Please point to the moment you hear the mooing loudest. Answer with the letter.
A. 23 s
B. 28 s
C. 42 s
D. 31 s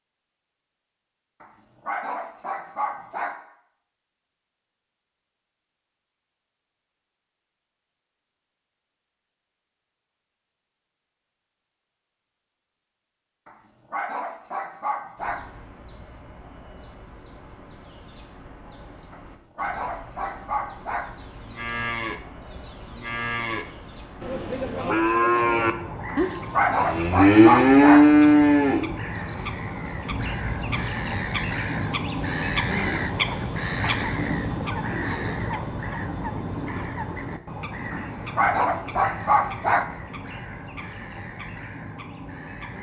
B.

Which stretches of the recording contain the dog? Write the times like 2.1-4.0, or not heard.
1.4-3.4, 13.4-15.4, 19.1-21.1, 26.1-28.1, 37.9-39.9.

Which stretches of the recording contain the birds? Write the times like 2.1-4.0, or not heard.
15.2-42.7.